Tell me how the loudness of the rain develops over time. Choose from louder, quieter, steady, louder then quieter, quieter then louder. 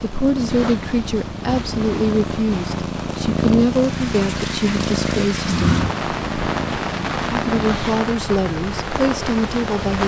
louder.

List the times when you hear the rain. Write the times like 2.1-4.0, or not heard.
0.0-10.0.